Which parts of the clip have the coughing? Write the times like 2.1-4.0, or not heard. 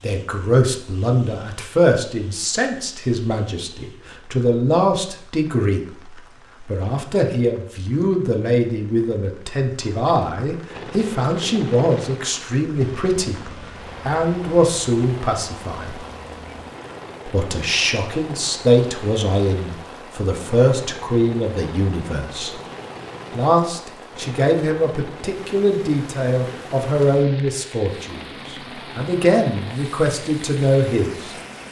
not heard.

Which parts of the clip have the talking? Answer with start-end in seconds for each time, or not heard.
0.0-16.1, 17.2-22.6, 23.3-31.4.